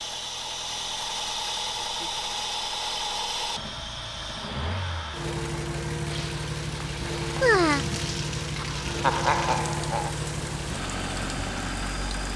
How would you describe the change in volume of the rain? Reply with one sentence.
The loudness of the rain goes down.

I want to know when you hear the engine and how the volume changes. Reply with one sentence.
You can hear the engine from 0.0 to 12.3 s, at a steady volume.